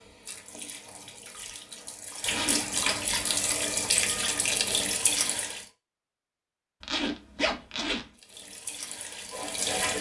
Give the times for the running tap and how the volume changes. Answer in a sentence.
You can hear the running tap from 0.0 to 5.7 s, getting louder; and briefly from 8.2 to 9.9 s.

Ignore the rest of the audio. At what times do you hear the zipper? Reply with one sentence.
You can hear the zipper from 2.2 to 2.8 s and from 6.8 to 8.1 s.